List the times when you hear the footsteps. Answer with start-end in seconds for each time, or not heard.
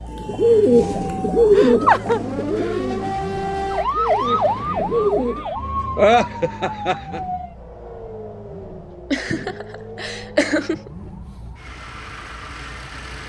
not heard.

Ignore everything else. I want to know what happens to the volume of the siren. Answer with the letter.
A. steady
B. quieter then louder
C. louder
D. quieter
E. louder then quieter
E.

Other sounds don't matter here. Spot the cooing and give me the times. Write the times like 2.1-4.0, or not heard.
0.1-5.5.